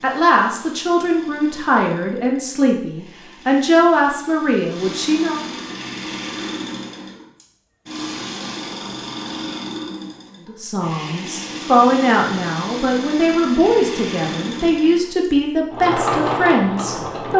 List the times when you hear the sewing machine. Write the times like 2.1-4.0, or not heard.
0.0-17.3.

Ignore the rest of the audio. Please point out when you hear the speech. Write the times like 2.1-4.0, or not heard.
0.0-5.4, 10.4-17.3.